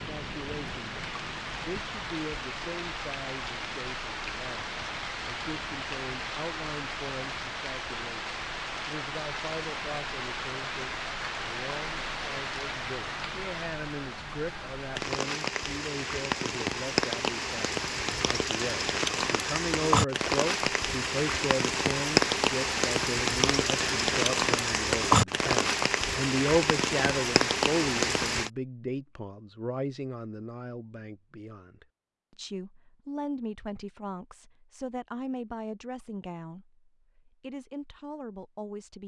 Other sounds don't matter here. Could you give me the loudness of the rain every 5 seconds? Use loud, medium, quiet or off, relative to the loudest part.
medium, medium, medium, loud, loud, loud, off, off.